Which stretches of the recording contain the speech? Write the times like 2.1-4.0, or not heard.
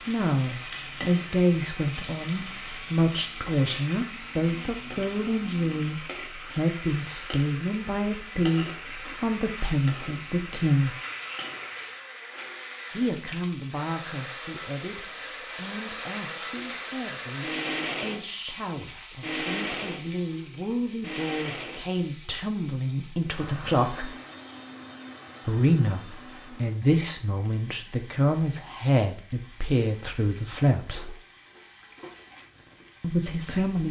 0.1-10.9, 12.9-24.1, 25.4-31.1, 33.0-33.8.